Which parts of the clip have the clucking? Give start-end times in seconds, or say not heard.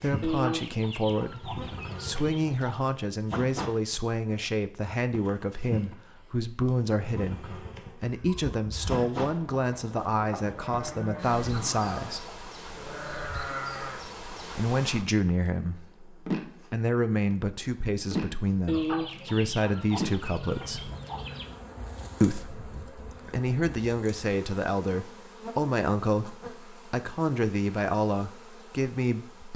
0.2-2.8, 18.6-21.5.